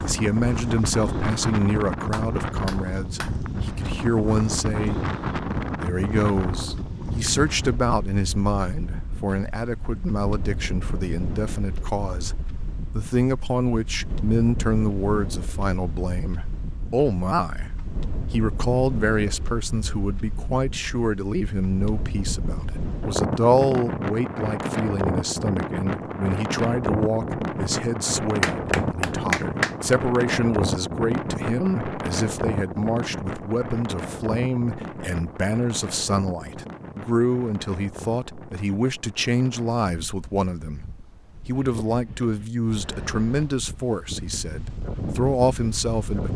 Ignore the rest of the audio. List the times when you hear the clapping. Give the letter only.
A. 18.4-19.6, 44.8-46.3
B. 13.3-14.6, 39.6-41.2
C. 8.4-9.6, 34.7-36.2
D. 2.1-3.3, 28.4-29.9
D.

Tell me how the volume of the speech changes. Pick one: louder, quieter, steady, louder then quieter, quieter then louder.
steady.